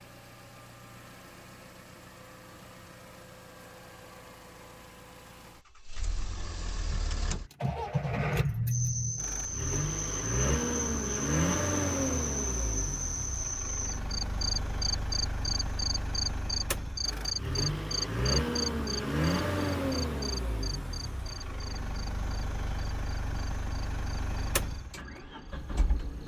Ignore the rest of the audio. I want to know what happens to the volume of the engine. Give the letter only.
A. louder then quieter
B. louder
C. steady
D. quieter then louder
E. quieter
A.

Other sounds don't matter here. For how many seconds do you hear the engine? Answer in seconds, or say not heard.
26 s.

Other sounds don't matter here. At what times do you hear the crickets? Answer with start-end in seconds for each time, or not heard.
8.7-26.2.